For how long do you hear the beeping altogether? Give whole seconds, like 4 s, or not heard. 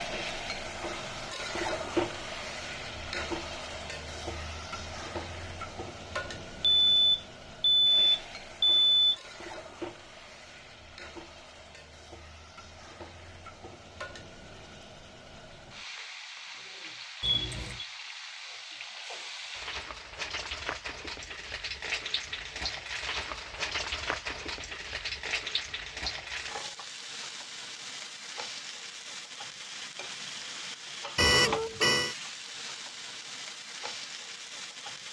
4 s.